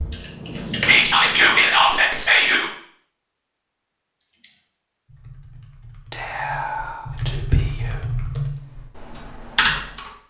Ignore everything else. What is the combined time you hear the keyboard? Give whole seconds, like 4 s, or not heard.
8 s.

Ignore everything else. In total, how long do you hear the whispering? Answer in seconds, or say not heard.
4 s.